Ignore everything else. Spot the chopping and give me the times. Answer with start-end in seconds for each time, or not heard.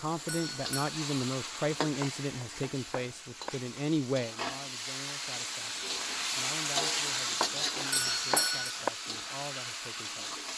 2.0-3.5, 7.4-8.9.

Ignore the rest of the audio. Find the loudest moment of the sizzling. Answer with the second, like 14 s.
7 s.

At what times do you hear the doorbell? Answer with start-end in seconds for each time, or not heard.
0.2-0.9, 7.9-8.8.